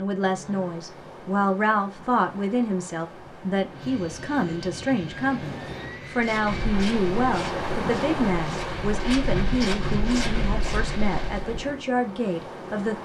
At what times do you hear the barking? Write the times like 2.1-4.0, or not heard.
not heard.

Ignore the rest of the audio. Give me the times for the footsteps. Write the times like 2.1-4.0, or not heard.
6.2-11.7.